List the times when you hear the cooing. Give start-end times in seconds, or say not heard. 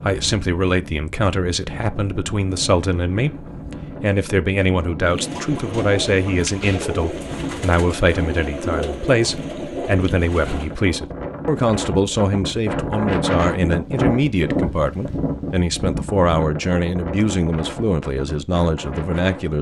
5.0-10.8.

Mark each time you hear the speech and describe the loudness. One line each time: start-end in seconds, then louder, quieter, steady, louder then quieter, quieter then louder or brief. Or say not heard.
0.0-19.5 steady.